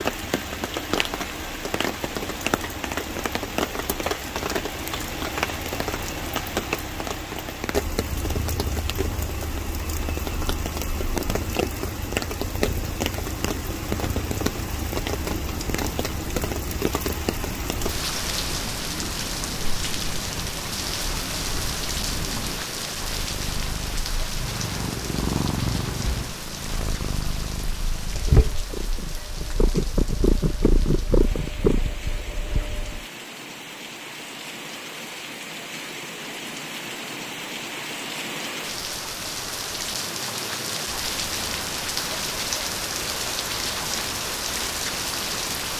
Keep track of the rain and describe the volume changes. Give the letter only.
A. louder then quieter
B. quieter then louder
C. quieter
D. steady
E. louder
B.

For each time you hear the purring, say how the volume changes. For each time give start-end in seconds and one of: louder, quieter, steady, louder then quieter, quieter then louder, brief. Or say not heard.
8.0-33.0 louder.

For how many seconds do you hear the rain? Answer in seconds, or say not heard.
46 s.